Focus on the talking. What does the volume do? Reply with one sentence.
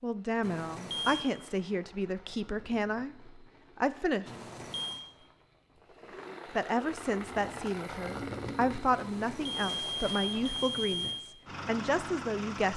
The loudness of the talking stays about the same.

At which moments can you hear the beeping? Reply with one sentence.
The beeping can be heard from 0.4 to 1.3 s, from 4.2 to 5.0 s and from 8.9 to 11.2 s.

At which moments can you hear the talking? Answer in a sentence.
You can hear the talking from 0.0 to 4.2 s and from 6.5 to 12.7 s.